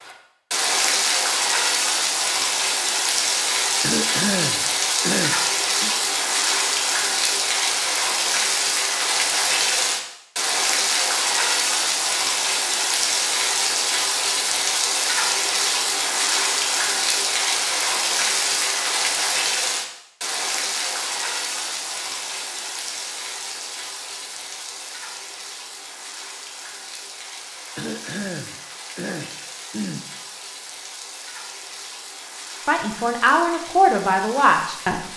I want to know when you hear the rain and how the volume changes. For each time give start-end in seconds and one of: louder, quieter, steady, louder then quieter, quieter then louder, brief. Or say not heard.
0.0-35.1 quieter.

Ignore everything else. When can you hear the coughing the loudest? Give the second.
4 s.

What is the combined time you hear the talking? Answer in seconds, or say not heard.
2 s.